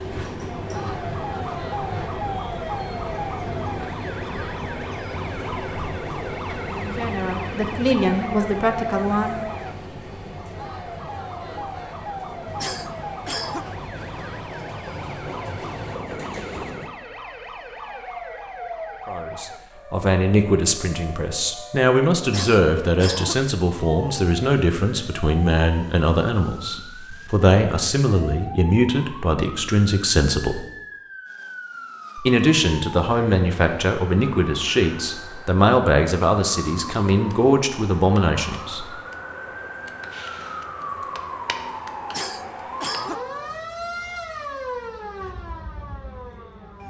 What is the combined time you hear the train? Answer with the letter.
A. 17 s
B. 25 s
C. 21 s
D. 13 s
A.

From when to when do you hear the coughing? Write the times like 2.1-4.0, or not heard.
12.6-13.7, 22.3-23.4, 42.1-43.2.